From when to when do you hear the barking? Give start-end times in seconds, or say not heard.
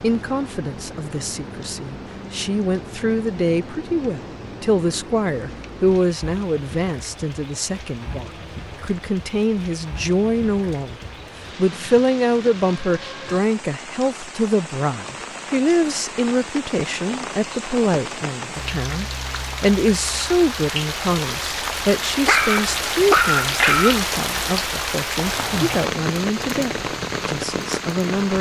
22.2-24.0.